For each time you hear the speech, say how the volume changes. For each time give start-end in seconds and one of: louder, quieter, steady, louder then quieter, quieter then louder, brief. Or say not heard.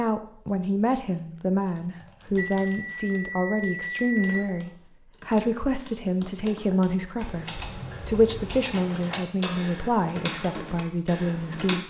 0.0-11.8 steady.